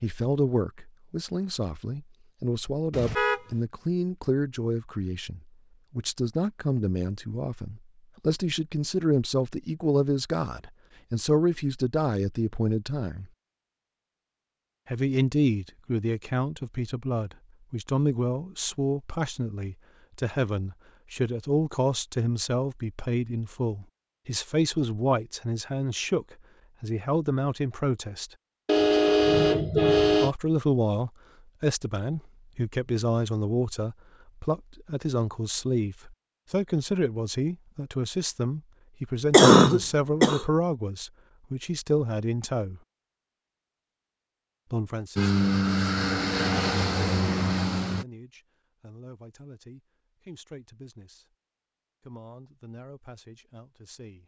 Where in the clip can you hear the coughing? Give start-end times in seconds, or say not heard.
39.3-40.5.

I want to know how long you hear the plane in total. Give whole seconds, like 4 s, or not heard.
3 s.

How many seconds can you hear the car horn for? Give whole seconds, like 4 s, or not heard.
2 s.